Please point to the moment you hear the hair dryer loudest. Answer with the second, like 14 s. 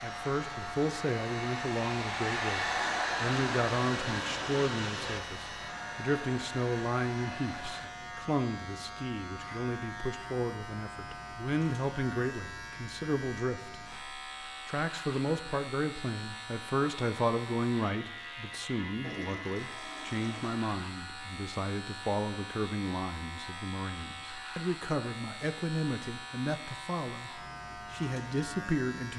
3 s.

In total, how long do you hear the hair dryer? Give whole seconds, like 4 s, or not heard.
8 s.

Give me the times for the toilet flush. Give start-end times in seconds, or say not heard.
3.4-5.2, 19.0-20.6.